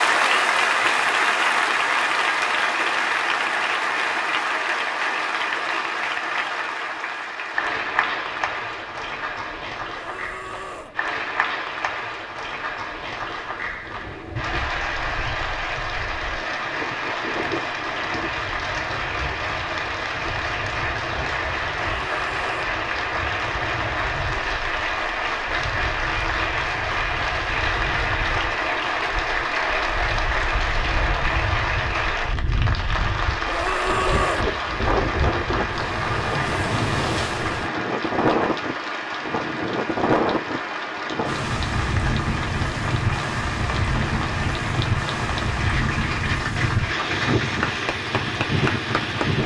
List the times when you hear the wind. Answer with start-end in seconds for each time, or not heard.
13.8-49.4.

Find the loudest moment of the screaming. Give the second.
34 s.